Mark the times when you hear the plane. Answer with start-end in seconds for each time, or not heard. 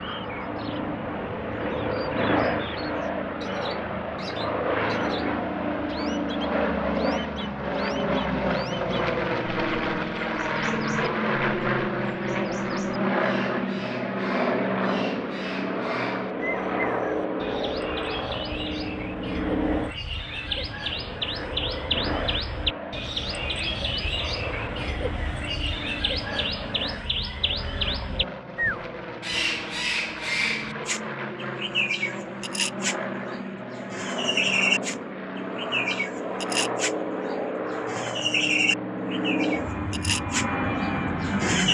0.0-41.6.